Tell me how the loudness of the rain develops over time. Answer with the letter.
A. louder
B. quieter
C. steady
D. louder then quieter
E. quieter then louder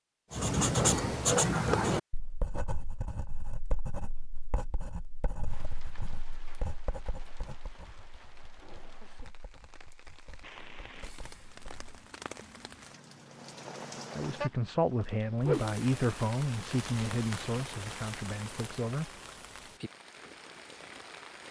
D.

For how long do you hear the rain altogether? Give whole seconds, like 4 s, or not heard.
16 s.